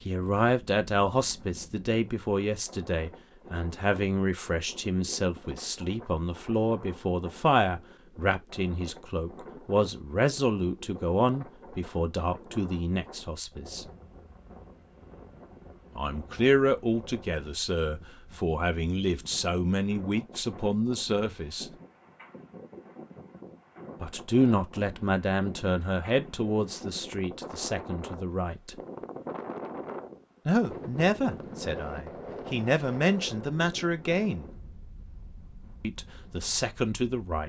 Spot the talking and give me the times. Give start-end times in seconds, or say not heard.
0.1-13.8, 15.9-21.7, 24.0-28.8, 30.4-34.5, 35.8-37.4.